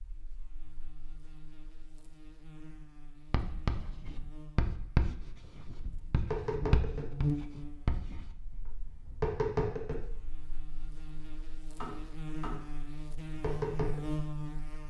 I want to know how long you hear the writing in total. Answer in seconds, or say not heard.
5 s.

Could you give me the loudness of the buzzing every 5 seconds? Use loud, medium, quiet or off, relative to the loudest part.
quiet, loud, loud.